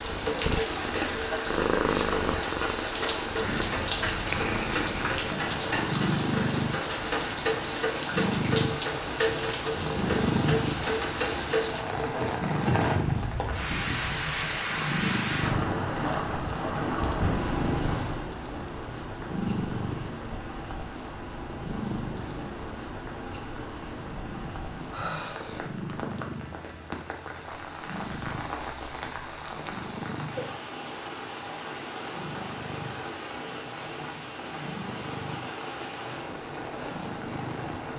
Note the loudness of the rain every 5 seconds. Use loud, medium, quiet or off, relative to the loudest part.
loud, loud, loud, loud, medium, medium, medium, medium.